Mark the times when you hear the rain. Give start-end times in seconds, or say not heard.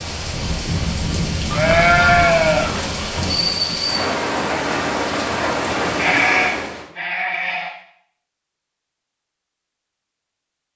0.0-6.8.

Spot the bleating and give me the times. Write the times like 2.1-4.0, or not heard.
1.5-3.3, 6.0-7.7.